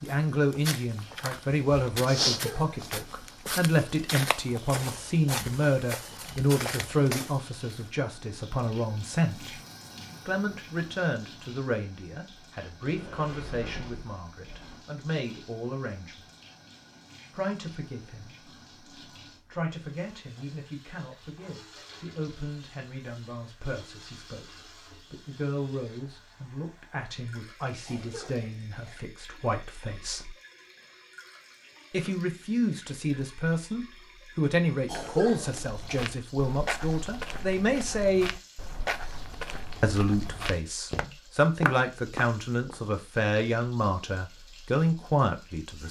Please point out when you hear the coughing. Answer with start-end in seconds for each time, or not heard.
2.3-2.8, 27.9-29.0, 34.9-36.0.